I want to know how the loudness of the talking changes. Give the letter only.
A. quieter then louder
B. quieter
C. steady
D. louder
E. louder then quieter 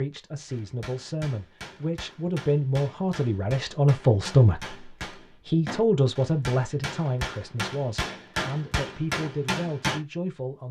E.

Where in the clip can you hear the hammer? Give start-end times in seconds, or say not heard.
0.5-10.0.